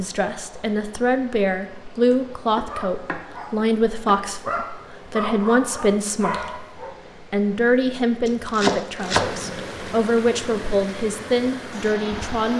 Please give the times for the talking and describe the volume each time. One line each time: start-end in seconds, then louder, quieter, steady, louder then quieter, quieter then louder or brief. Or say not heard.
0.0-12.5 steady.